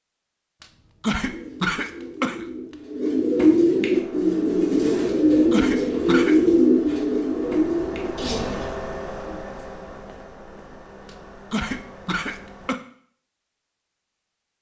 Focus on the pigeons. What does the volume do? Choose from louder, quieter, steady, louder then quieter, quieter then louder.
louder then quieter.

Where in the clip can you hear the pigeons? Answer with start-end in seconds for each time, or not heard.
1.2-8.7.